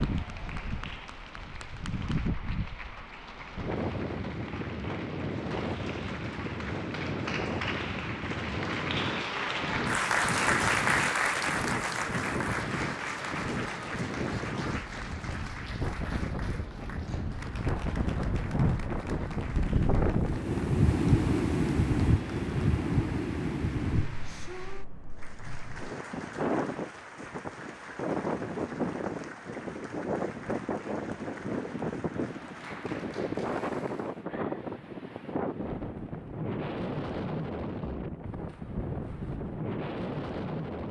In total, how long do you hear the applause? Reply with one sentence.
The applause can be heard for 34 seconds in total.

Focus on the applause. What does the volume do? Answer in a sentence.
The volume of the applause goes up, then down.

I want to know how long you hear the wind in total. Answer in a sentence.
The wind can be heard for 41 seconds in total.